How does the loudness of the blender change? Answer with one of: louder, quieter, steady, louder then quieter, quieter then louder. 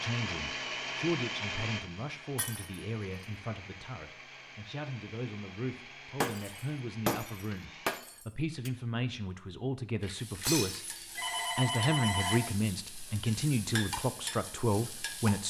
quieter.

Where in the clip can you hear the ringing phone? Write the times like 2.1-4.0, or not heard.
11.2-12.6.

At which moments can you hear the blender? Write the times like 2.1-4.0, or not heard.
0.0-8.0.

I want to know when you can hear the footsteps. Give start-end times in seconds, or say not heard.
not heard.